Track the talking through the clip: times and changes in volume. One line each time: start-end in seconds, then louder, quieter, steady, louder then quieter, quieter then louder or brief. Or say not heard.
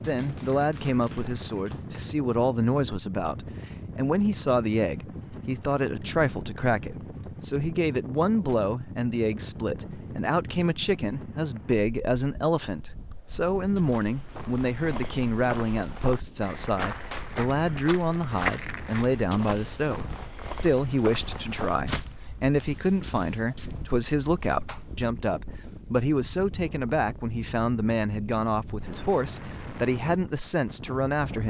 0.0-31.4 steady.